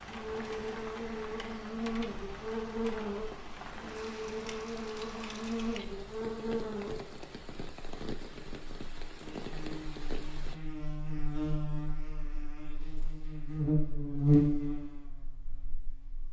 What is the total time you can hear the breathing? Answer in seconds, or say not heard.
not heard.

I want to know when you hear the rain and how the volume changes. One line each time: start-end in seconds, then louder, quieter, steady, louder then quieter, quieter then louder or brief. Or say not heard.
0.0-10.6 steady.